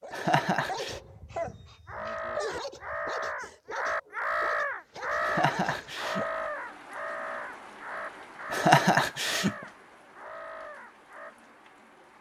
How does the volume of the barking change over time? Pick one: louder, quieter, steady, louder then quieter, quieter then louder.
quieter.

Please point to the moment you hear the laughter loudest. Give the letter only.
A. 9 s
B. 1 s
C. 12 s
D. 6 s
A.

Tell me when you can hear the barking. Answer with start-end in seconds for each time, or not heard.
0.0-6.2.